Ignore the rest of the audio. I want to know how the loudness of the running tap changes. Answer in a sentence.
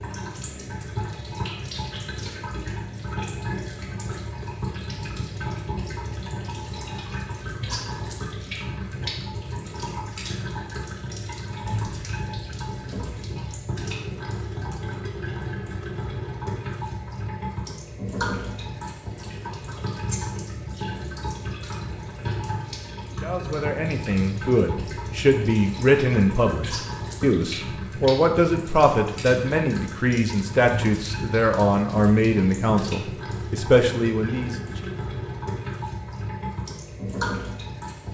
The volume of the running tap stays about the same.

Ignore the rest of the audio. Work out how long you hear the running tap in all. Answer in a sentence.
You can hear the running tap for 38 seconds altogether.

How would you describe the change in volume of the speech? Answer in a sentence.
The volume of the speech stays about the same.